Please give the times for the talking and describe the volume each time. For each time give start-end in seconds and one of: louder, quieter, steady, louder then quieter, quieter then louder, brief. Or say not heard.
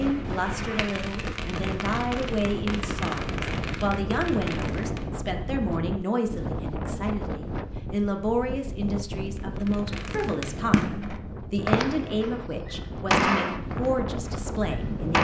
0.0-15.1 steady.